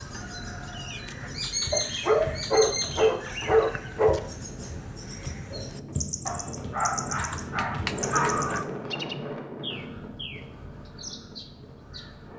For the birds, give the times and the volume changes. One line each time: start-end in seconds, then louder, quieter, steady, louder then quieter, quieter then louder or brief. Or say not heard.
0.0-12.3 quieter.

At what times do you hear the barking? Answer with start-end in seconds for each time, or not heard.
1.7-4.2, 6.2-8.7.